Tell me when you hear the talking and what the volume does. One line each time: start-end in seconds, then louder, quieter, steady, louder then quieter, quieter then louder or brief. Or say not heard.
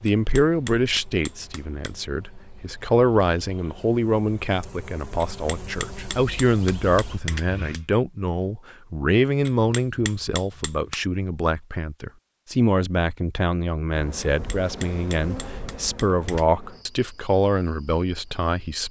0.0-18.8 steady.